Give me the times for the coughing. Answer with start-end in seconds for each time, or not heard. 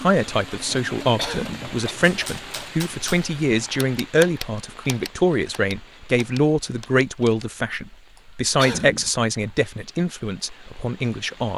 1.1-2.0, 8.6-9.1.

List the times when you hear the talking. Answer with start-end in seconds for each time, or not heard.
0.0-11.5.